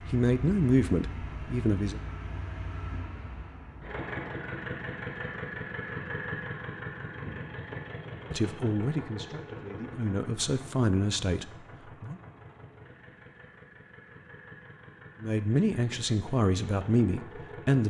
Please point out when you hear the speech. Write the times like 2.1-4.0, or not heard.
0.1-2.0, 8.3-12.2, 15.2-17.8.